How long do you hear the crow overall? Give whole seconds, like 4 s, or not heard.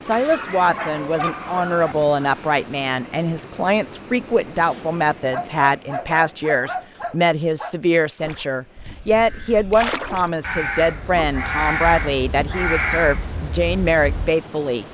6 s.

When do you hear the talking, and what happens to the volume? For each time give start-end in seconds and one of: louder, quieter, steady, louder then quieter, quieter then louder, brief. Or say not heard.
0.1-14.8 steady.